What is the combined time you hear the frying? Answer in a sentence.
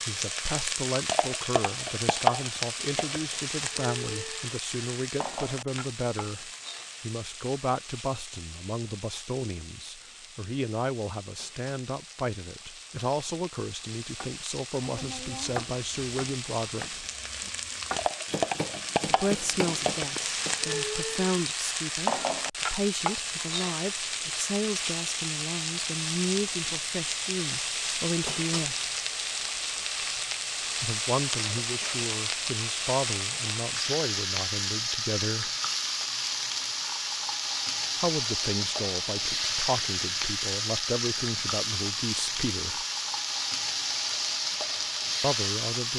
You can hear the frying for 46 seconds altogether.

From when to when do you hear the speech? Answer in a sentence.
The speech can be heard from 0.1 to 17.1 s, from 19.1 to 28.8 s, from 30.8 to 35.5 s, from 38.0 to 42.9 s and from 45.2 to 45.9 s.